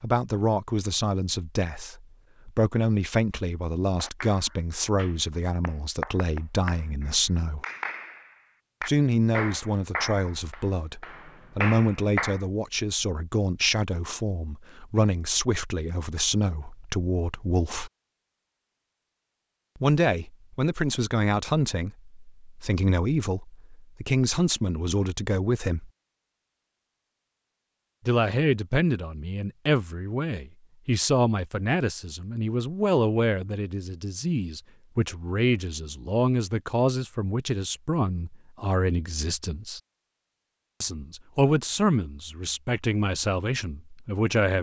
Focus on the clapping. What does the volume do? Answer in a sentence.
The volume of the clapping goes up.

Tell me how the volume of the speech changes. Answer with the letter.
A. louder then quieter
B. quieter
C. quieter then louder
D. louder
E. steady
E.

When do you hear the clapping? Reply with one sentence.
You can hear the clapping from 4.0 to 12.4 s.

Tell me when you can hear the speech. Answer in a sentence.
You can hear the speech from 0.0 to 7.7 s, from 8.8 to 17.9 s, from 19.8 to 25.9 s, from 28.1 to 39.8 s and from 40.8 to 44.5 s.